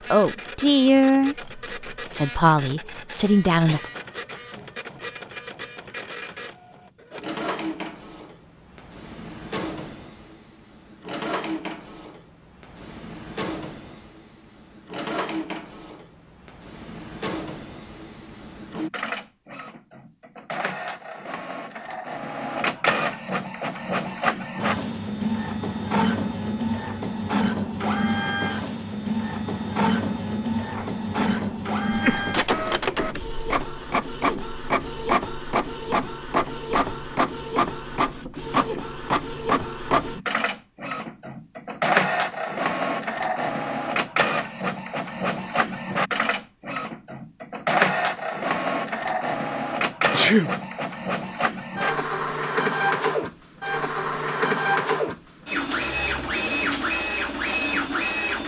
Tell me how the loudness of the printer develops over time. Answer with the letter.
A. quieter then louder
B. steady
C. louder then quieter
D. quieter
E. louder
E.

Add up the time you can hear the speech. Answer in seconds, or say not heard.
4 s.